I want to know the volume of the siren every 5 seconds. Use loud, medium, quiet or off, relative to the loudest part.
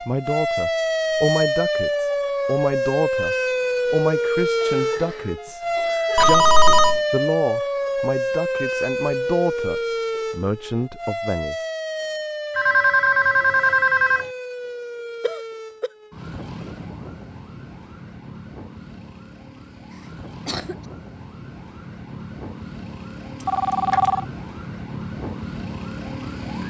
loud, loud, medium, quiet, quiet, medium.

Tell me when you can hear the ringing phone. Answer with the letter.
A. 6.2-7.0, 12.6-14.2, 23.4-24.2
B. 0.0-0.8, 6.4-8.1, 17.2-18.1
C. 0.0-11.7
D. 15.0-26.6
A.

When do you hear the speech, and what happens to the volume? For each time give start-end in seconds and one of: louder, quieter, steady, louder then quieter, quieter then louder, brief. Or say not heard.
0.0-11.7 steady.